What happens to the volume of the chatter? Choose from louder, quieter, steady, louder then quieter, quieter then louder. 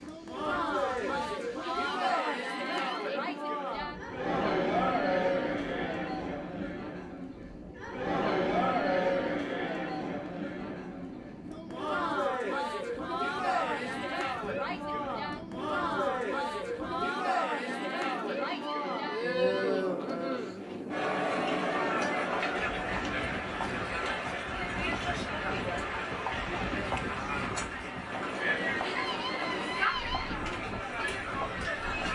steady.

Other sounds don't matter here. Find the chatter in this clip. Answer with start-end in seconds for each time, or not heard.
0.1-32.1.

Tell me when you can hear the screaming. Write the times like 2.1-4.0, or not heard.
1.6-3.2, 18.2-19.9, 28.8-30.4.